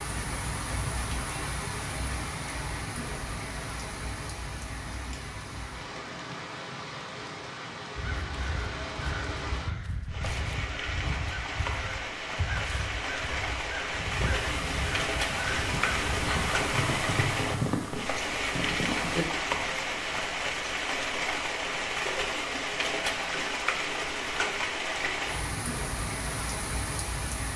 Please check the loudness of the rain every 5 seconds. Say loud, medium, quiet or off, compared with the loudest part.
medium, medium, loud, loud, loud, loud.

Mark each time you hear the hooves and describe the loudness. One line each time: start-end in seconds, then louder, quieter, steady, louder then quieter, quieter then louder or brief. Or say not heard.
13.9-19.7 louder.